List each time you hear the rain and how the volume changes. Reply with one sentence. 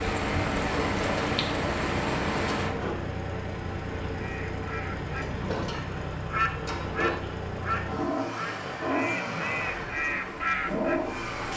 The rain can be heard from 0.0 to 11.5 s, getting quieter.